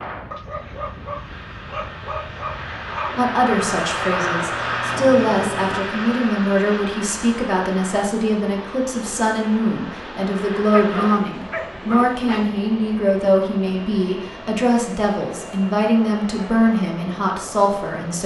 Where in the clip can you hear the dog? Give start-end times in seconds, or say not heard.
0.3-3.2, 10.7-12.6.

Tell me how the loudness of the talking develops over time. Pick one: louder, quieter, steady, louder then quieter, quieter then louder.
steady.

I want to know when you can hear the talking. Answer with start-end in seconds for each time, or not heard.
3.1-18.2.